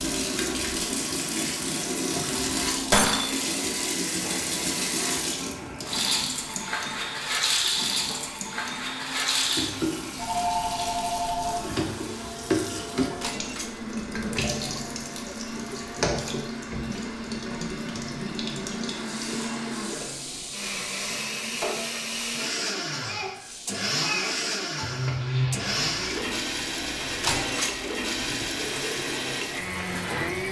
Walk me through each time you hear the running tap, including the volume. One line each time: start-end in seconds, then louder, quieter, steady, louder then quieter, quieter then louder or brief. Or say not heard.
0.0-30.4 quieter.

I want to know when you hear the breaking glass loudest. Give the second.
3 s.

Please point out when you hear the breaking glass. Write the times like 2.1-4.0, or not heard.
2.9-3.5, 13.2-13.8, 27.2-27.8.